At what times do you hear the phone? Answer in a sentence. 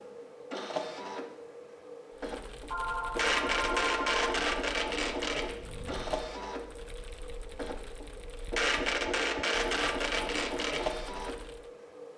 The phone can be heard from 2.7 to 4.4 s.